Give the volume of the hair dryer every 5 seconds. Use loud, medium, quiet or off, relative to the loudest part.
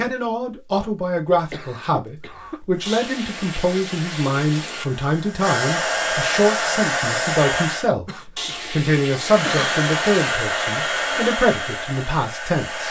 quiet, loud, loud.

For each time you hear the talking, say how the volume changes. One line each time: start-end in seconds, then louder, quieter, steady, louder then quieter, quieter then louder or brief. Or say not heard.
0.0-12.8 steady.